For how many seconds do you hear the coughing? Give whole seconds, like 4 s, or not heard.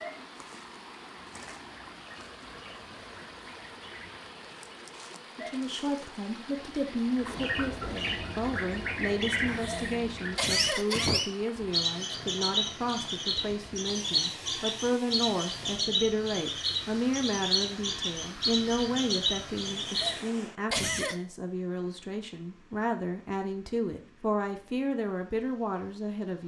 3 s.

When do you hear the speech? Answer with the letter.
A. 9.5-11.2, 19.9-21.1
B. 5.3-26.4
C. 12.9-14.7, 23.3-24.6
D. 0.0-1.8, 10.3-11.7
B.